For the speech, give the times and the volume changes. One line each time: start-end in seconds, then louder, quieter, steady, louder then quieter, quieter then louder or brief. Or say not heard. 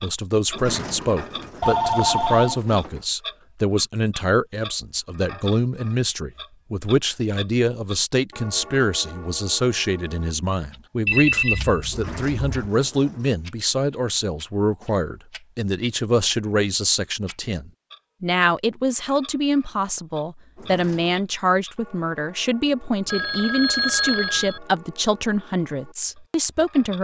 0.0-26.9 steady.